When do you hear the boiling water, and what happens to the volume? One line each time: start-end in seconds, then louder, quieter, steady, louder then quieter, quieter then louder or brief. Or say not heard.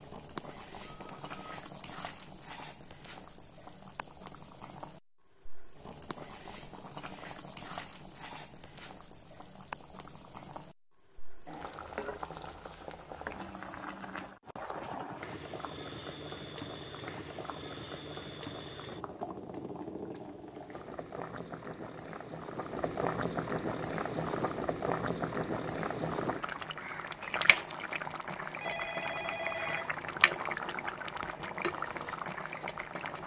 0.0-33.2 louder.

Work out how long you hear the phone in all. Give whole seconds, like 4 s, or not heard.
2 s.